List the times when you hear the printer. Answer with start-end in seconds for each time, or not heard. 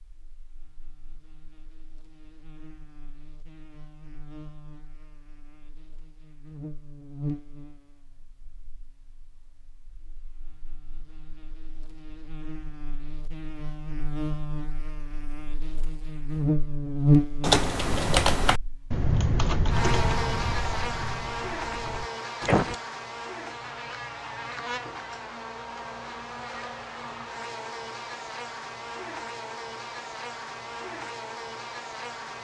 not heard.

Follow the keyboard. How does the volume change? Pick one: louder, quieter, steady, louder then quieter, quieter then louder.
quieter.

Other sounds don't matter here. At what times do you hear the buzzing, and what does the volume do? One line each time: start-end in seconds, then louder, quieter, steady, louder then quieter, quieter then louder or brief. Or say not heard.
0.0-32.3 louder then quieter.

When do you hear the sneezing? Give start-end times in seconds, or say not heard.
22.2-22.7.